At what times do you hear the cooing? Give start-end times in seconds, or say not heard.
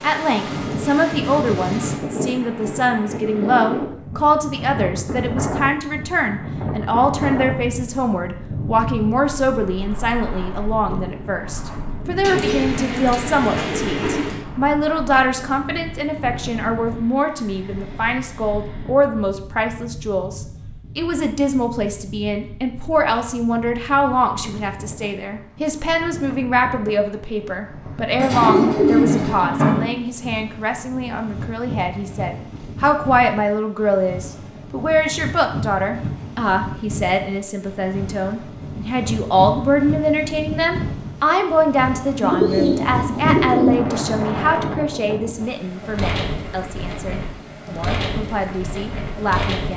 12.2-14.4, 28.1-29.9, 42.2-43.8.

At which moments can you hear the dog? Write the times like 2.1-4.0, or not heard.
not heard.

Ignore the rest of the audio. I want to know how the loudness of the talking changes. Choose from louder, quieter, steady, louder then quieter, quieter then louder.
steady.